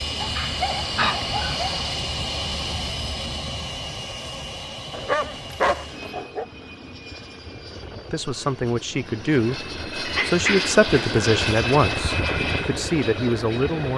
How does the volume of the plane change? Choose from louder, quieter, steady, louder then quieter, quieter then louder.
quieter then louder.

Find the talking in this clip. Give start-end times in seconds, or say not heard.
8.1-13.9.